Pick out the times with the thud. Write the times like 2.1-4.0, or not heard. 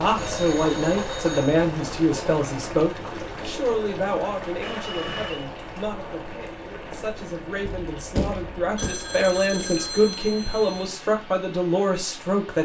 7.7-8.9.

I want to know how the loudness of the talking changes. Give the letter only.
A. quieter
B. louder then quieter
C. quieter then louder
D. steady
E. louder
C.